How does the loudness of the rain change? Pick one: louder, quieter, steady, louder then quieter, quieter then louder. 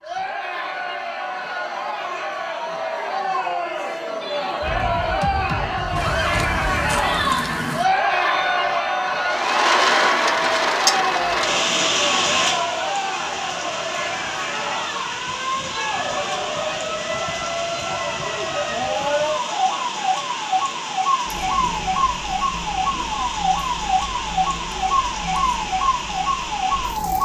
quieter.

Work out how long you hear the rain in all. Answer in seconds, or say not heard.
18 s.